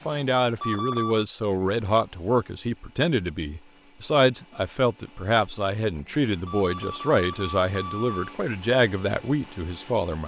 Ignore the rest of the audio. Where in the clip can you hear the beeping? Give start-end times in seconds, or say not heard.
0.6-1.2, 6.5-8.3.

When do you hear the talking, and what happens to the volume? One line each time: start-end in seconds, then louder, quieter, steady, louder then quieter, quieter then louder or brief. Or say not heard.
0.1-10.2 steady.